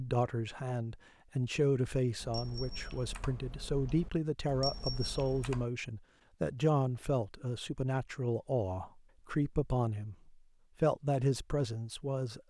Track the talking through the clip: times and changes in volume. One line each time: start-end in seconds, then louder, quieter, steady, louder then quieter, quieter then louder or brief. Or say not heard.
0.0-12.4 steady.